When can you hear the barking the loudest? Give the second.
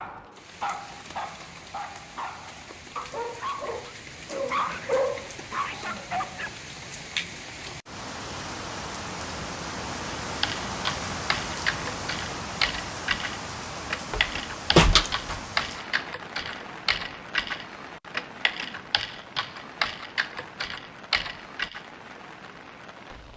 5 s.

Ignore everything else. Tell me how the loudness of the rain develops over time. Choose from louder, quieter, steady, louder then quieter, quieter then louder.
louder then quieter.